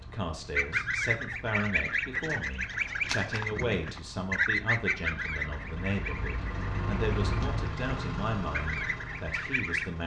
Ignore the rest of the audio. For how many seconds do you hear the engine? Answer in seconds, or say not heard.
10 s.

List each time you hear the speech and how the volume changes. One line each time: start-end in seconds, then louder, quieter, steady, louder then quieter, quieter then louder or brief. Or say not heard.
0.0-10.0 steady.